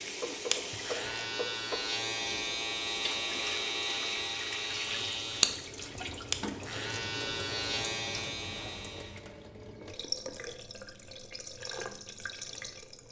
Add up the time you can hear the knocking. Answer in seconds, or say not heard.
3 s.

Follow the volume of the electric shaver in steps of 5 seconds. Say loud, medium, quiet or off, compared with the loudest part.
loud, loud, off.